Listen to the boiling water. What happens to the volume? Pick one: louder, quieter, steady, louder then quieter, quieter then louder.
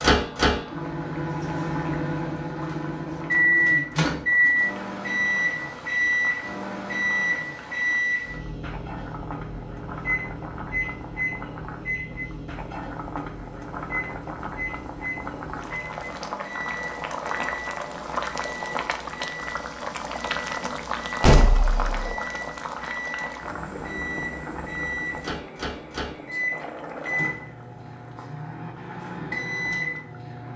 louder then quieter.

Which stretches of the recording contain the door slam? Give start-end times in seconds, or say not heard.
21.2-22.1.